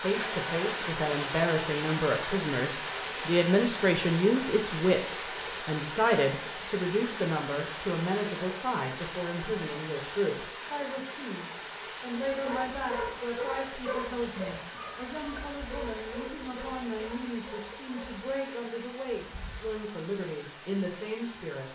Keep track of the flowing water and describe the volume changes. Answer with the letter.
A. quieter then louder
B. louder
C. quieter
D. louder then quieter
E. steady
C.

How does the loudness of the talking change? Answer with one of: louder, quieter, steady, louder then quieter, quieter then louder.
quieter.